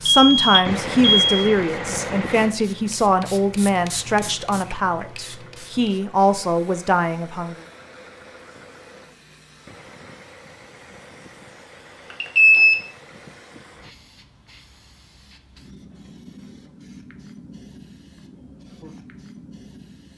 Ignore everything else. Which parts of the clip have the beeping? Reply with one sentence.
The beeping can be heard from 0.1 to 1.3 s and from 12.1 to 12.8 s.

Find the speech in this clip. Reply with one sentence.
The speech can be heard from 0.0 to 7.6 s.